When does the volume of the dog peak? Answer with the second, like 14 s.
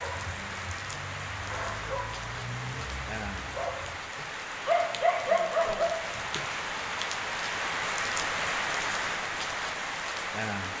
5 s.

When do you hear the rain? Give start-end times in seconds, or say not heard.
0.0-10.7.